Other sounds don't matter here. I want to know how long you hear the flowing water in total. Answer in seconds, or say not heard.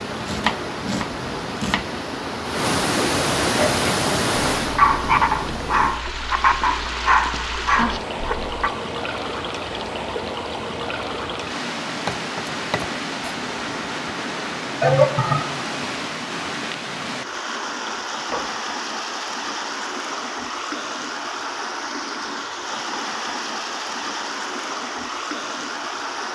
26 s.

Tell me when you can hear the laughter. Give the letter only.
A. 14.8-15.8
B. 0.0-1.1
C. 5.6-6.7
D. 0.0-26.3
A.